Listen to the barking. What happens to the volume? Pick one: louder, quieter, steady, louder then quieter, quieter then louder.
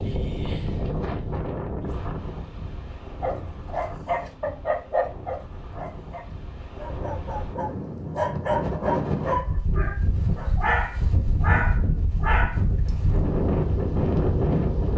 quieter then louder.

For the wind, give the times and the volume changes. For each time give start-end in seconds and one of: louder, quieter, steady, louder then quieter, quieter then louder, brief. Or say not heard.
0.0-14.9 quieter then louder.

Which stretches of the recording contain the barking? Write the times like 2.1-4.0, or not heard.
3.2-12.6.